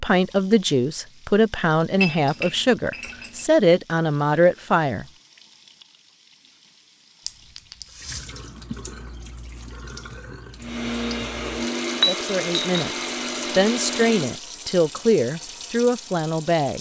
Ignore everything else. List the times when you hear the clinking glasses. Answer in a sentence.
You can hear the clinking glasses from 1.9 to 3.5 s, from 7.2 to 8.0 s and from 11.9 to 12.8 s.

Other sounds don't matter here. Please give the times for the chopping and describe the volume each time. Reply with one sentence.
The chopping can't be heard in this clip.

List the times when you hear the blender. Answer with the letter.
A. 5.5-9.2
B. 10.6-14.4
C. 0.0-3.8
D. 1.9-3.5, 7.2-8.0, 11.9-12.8
B.